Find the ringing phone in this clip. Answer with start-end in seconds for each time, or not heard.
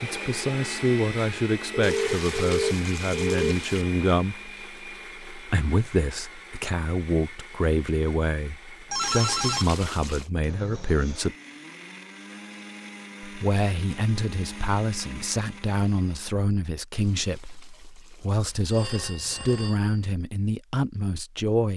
1.7-3.5, 8.9-9.7, 18.5-20.1.